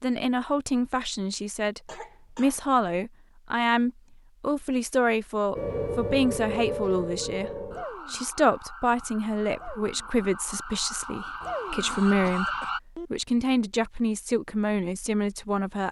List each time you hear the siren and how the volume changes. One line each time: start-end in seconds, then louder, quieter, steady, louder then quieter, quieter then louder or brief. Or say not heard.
5.5-12.8 quieter then louder.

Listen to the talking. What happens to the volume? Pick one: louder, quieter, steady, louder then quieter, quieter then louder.
steady.